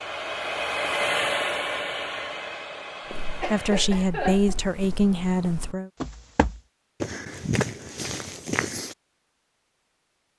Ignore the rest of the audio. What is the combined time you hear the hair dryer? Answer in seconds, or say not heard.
4 s.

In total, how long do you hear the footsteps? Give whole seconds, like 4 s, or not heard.
6 s.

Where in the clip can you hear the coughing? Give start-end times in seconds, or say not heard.
3.4-4.6.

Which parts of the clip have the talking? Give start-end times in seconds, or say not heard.
3.5-5.9.